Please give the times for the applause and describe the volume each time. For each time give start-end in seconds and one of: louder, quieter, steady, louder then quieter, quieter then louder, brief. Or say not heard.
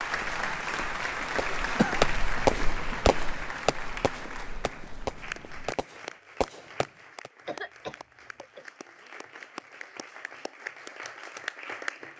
0.0-12.1 quieter then louder.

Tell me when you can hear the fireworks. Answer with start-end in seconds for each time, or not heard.
1.4-7.3.